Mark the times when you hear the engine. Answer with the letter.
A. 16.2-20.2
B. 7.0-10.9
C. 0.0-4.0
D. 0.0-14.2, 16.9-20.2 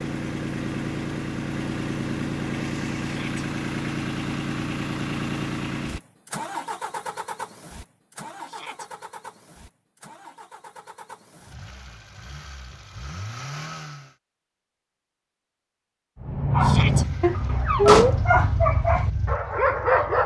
D.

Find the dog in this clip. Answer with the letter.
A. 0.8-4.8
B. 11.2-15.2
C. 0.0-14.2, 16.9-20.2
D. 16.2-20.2
D.